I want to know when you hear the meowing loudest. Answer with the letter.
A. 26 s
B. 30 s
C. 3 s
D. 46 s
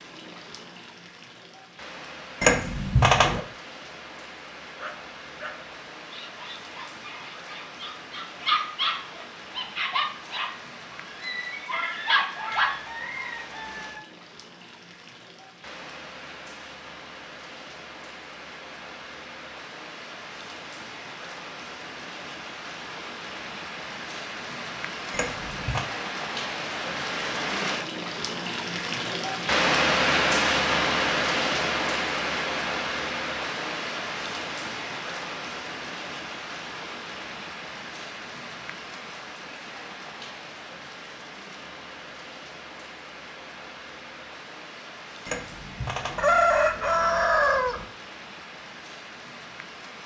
C.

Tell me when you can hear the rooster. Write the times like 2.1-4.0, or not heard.
12.7-14.0, 46.1-47.9.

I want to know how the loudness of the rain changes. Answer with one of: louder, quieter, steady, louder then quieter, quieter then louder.
louder then quieter.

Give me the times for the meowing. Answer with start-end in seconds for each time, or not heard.
2.4-3.4, 25.1-25.9, 45.2-46.2.